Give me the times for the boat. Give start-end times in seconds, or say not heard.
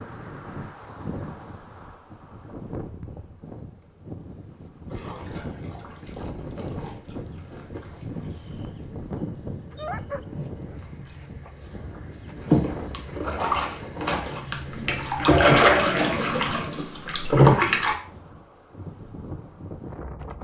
4.9-17.9.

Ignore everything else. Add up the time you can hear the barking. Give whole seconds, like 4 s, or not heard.
2 s.